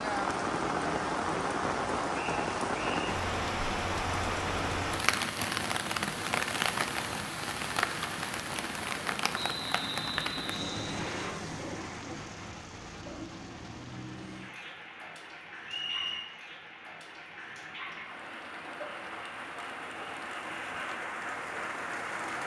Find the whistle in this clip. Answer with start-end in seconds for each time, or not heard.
2.1-3.1, 9.3-11.3, 15.7-16.3.